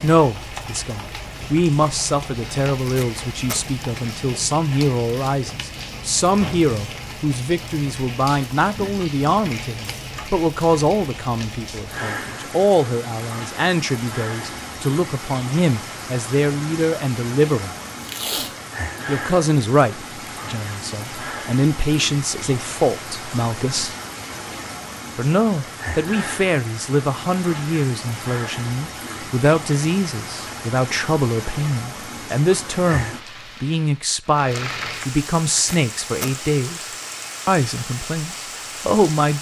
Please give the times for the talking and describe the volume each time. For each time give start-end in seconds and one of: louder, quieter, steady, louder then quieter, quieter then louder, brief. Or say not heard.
0.0-17.8 steady
19.1-23.9 quieter then louder
25.1-36.9 steady
37.5-39.3 brief.